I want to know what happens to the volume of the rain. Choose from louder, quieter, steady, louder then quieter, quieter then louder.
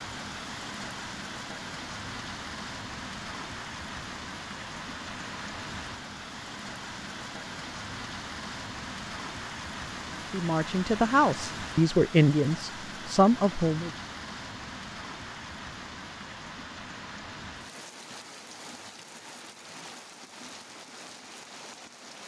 quieter.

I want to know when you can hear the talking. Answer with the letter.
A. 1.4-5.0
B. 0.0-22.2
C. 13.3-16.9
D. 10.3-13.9
D.